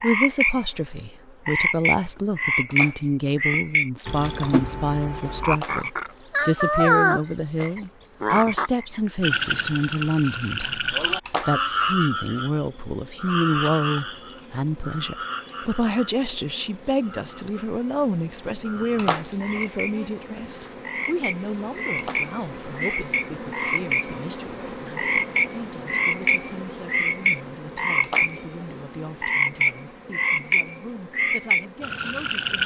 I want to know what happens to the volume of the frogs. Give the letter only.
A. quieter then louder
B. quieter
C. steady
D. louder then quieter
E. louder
A.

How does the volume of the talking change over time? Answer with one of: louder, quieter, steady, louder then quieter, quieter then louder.
quieter.